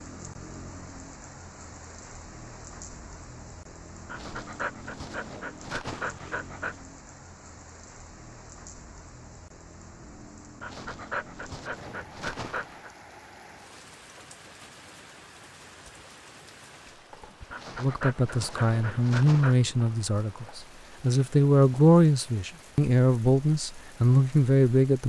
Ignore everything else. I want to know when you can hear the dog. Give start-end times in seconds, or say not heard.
4.0-6.8, 10.6-12.9, 17.5-19.6.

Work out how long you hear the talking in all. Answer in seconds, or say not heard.
7 s.